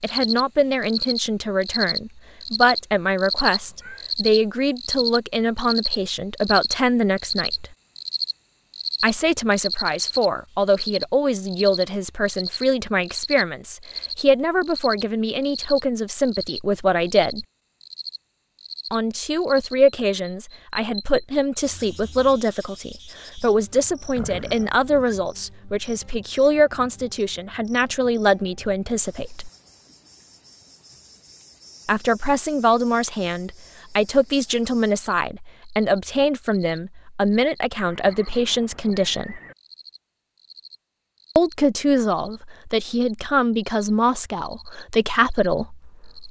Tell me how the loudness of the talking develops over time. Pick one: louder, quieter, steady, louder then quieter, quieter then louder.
steady.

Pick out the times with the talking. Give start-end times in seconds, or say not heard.
0.0-7.7, 9.0-17.4, 18.9-29.5, 31.9-39.4, 41.4-46.2.